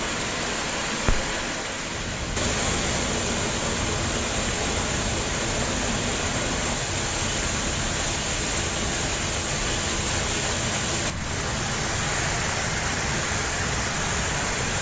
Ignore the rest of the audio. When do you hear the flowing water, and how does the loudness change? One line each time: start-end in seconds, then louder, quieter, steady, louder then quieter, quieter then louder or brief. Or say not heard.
0.0-14.7 steady.